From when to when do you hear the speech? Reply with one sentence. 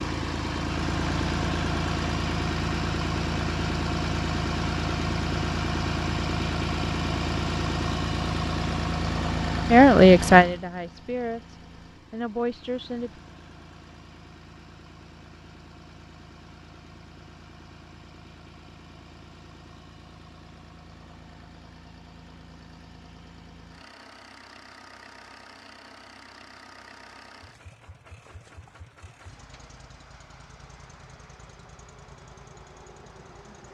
The speech can be heard from 9.7 to 13.2 s.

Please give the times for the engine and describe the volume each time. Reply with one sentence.
The engine can be heard from 0.0 to 33.7 s, getting quieter.